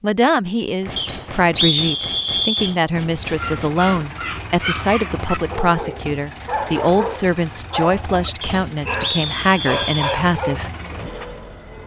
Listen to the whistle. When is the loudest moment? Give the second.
2 s.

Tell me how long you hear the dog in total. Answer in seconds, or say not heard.
8 s.